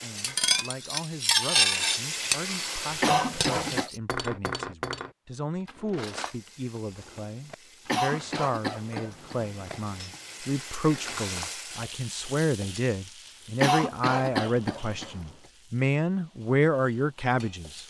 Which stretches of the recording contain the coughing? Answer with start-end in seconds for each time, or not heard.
3.0-3.9, 7.8-10.2, 13.6-15.2.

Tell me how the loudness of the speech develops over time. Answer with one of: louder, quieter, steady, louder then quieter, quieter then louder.
louder.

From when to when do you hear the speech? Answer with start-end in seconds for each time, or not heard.
0.0-17.8.